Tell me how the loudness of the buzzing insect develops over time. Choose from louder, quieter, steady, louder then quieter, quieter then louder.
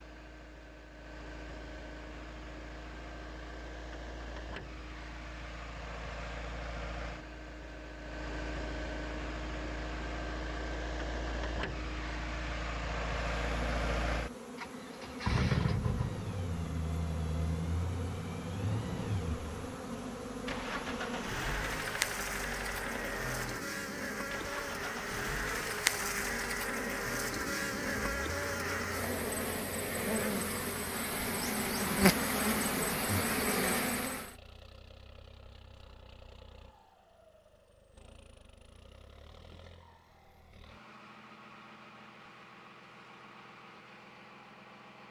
louder.